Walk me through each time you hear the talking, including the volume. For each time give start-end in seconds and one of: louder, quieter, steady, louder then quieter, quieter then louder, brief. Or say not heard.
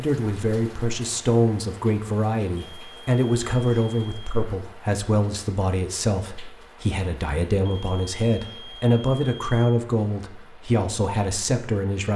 0.0-12.1 steady.